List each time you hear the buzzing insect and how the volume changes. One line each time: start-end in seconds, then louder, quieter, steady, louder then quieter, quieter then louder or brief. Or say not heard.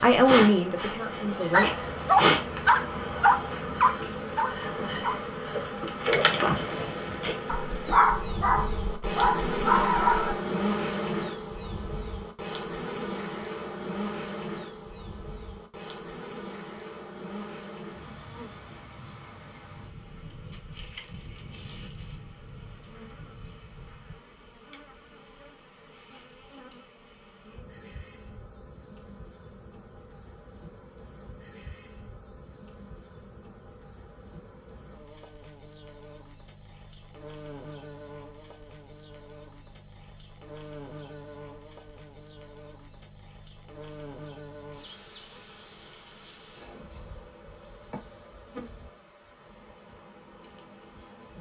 0.0-51.3 quieter.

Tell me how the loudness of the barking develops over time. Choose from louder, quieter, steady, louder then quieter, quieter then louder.
quieter then louder.